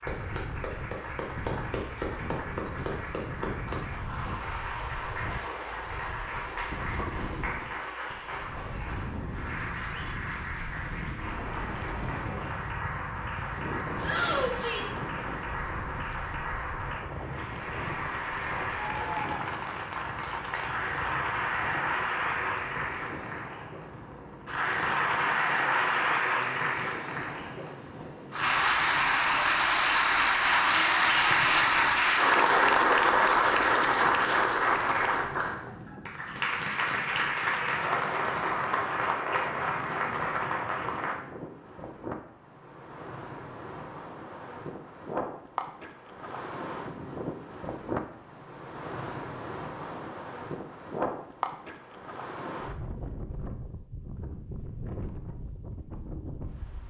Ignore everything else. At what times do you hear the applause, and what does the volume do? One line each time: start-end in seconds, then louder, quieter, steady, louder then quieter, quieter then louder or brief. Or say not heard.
0.0-41.1 louder.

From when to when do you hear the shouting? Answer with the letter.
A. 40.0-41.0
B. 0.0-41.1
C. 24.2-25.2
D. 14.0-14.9
D.